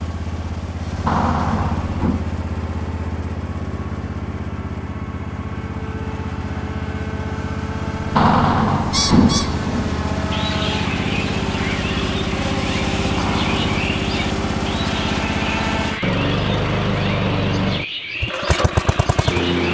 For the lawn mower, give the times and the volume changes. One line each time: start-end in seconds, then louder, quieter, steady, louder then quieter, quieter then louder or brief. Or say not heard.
0.0-19.6 louder.